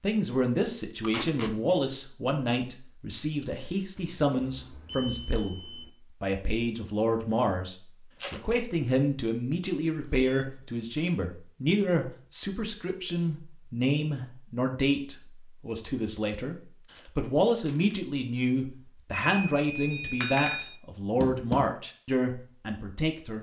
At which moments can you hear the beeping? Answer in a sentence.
The beeping can be heard from 4.0 to 5.9 s, from 9.8 to 10.6 s and from 19.1 to 20.6 s.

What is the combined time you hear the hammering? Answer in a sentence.
You can hear the hammering for 2 seconds altogether.